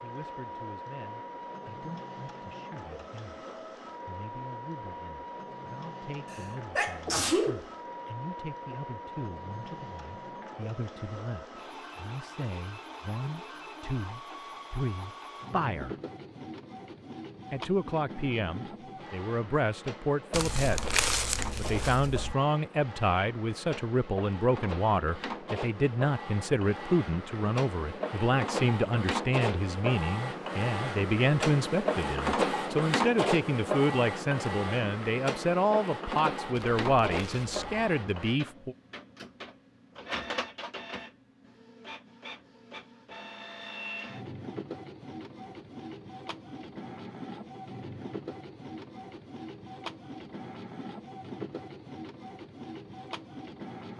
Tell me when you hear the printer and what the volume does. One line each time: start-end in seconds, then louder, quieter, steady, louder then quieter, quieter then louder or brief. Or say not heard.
0.0-53.9 louder then quieter.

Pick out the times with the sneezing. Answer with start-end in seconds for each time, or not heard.
6.3-7.7.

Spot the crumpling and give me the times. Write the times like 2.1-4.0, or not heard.
20.3-22.4, 36.5-37.6.